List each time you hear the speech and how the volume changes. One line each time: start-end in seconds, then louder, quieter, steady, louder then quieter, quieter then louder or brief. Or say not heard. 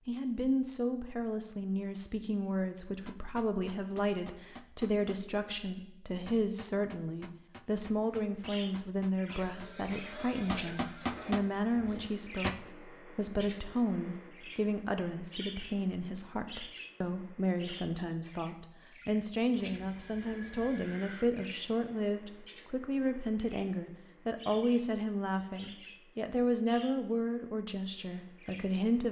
0.1-29.0 steady.